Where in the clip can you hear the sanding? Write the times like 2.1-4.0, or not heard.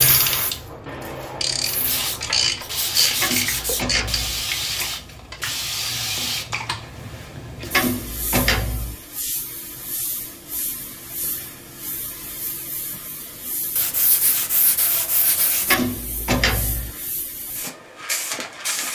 1.9-3.9, 13.8-15.8.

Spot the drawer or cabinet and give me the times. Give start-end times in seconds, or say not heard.
3.2-4.5, 7.7-8.9, 15.7-16.9.